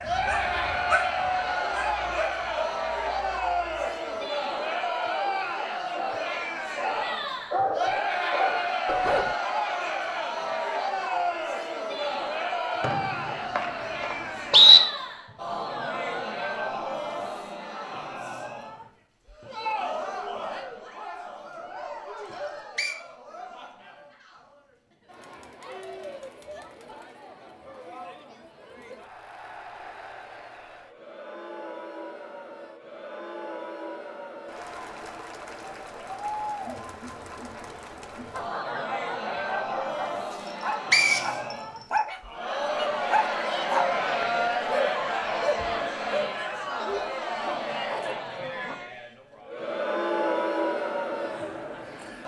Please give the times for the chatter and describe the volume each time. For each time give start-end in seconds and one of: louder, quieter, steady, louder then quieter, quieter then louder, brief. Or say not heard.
0.0-52.2 quieter then louder.